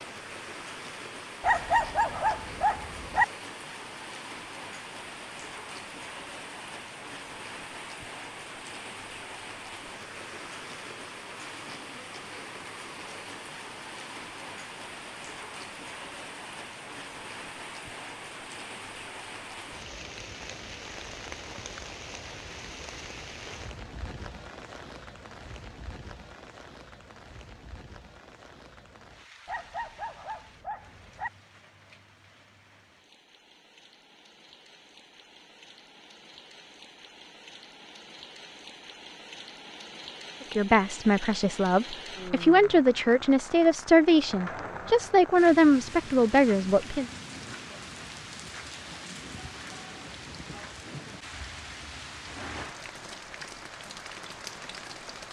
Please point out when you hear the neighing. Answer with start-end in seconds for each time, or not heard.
not heard.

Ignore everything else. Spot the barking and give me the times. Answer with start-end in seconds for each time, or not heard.
1.4-3.2, 29.4-31.3.